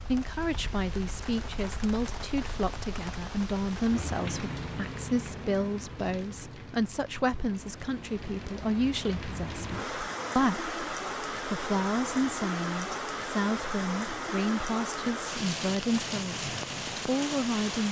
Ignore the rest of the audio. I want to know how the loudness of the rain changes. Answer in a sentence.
The volume of the rain goes up.